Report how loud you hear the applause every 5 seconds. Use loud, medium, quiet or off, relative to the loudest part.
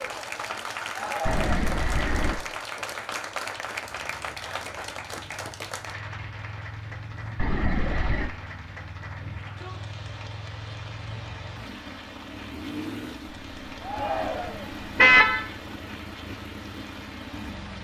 loud, medium, medium, medium.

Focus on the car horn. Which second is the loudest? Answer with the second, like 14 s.
15 s.